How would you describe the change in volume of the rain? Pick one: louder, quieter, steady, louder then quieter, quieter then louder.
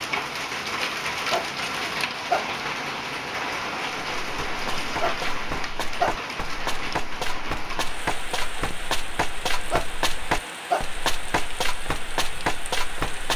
quieter.